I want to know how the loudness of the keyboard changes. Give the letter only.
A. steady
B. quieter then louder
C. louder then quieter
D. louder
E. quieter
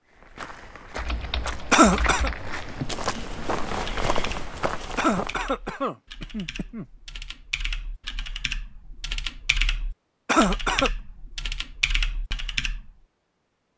B.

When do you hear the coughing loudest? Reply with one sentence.
The loudest moment of the coughing is at 2 seconds.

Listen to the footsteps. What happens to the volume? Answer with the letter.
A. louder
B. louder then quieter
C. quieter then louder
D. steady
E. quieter
A.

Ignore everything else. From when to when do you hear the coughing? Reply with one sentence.
The coughing can be heard from 1.7 to 2.3 s, from 5.0 to 6.8 s and from 10.2 to 10.9 s.